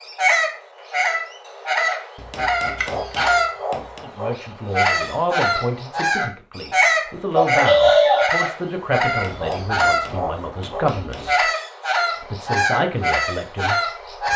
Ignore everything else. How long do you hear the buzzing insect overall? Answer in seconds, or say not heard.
not heard.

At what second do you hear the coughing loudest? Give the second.
8 s.